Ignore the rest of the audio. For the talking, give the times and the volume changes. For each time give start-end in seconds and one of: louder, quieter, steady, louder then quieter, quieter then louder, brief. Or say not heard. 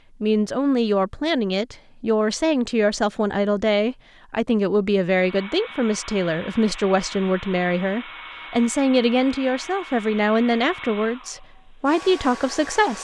0.2-12.9 steady.